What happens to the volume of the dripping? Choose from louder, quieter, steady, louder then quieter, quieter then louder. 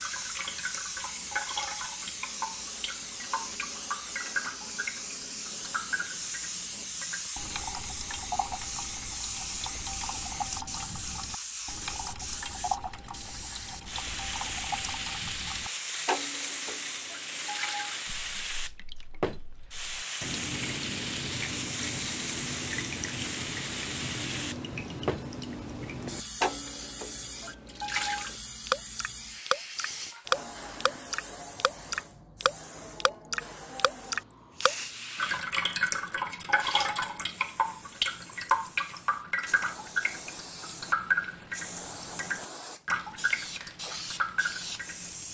louder.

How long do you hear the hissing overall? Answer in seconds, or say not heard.
45 s.